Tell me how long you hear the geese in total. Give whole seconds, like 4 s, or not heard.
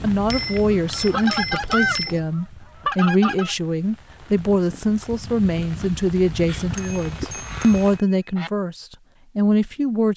5 s.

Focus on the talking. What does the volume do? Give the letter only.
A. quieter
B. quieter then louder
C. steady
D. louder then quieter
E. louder
C.